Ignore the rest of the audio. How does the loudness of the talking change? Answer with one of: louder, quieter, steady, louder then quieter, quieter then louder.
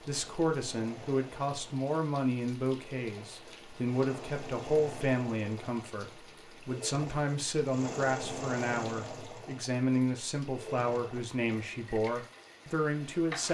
steady.